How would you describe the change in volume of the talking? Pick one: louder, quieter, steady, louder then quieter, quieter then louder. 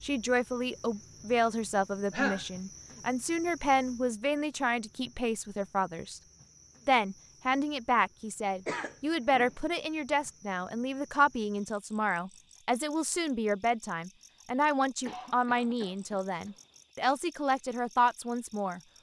steady.